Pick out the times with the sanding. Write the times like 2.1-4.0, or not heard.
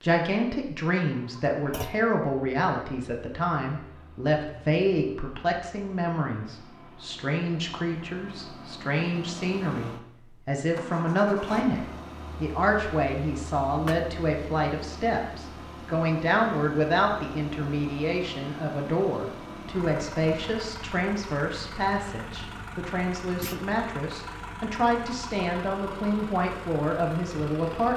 not heard.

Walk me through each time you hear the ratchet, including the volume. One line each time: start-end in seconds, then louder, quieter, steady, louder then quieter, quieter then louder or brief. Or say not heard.
not heard.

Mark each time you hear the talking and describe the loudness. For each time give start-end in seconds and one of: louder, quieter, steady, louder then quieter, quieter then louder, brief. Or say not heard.
0.0-27.9 steady.